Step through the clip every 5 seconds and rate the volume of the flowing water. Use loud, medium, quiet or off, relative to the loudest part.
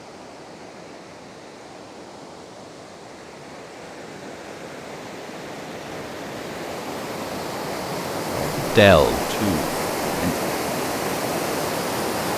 quiet, loud, loud.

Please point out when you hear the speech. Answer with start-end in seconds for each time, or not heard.
8.3-10.3.